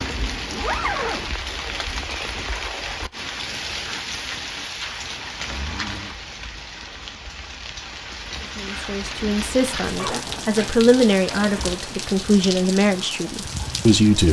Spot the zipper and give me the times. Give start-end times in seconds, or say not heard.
0.5-1.3, 5.5-6.2, 9.9-11.8.